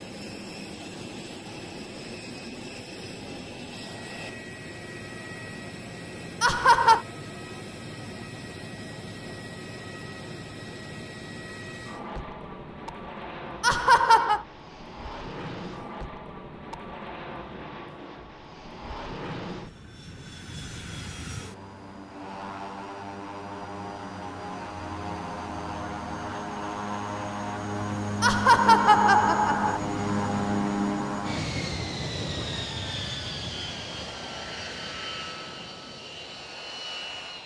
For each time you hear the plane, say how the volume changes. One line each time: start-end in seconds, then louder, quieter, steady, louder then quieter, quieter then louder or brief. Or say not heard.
0.0-37.4 louder.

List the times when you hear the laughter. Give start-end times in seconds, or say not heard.
6.4-7.0, 13.6-14.4, 28.2-29.8.